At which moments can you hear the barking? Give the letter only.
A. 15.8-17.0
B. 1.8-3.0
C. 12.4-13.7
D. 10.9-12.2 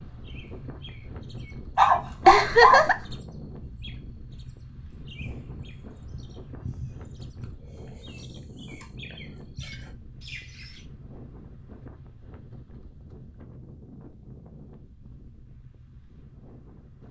B.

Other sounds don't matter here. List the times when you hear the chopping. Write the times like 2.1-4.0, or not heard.
not heard.